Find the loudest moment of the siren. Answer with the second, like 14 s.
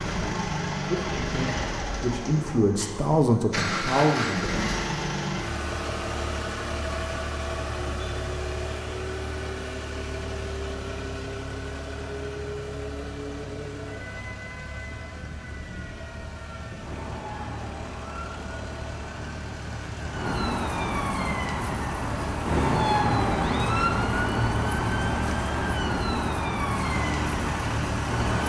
23 s.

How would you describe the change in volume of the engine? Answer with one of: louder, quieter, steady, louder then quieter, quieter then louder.
quieter then louder.